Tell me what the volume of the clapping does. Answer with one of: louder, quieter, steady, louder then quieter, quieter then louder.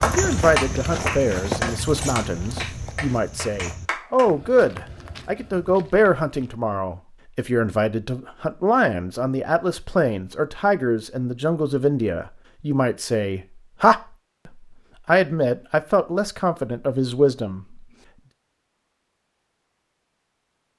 quieter.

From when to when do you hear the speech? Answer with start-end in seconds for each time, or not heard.
0.0-17.9.